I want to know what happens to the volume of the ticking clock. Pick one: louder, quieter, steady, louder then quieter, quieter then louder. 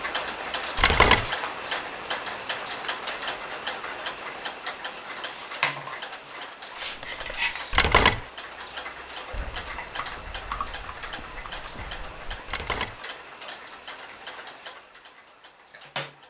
quieter.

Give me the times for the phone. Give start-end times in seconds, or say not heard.
0.8-1.3, 7.7-8.2, 12.4-13.0.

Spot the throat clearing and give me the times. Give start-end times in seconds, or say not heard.
not heard.